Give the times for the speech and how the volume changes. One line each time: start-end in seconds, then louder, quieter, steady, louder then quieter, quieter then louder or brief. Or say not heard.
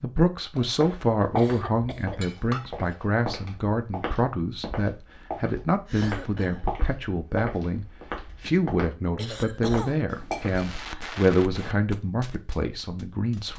0.0-13.5 steady.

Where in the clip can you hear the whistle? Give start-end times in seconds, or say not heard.
not heard.